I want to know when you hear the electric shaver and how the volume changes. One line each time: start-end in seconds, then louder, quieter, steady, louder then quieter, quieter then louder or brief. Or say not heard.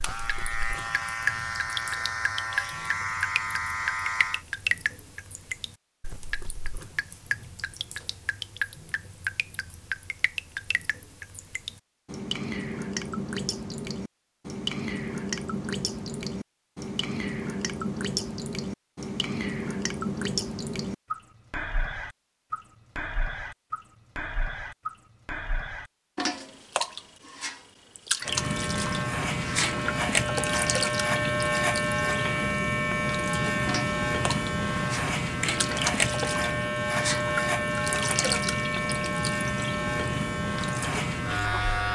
0.0-4.5 steady
28.2-41.8 steady.